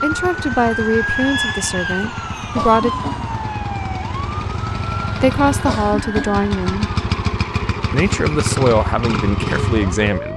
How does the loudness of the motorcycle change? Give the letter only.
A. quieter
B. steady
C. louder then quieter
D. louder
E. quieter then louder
D.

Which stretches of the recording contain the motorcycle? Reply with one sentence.
The motorcycle can be heard from 0.0 to 10.3 s.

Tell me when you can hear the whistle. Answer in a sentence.
The whistle can't be heard in this clip.